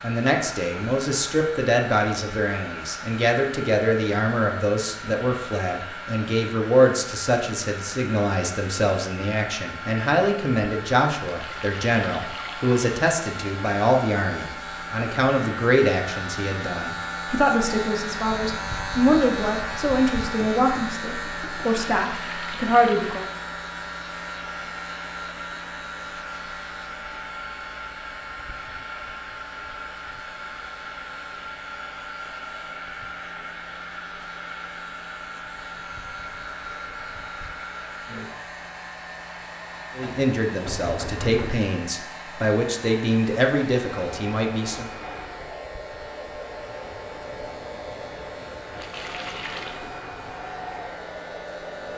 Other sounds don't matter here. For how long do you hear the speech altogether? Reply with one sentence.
The speech can be heard for 28 seconds in total.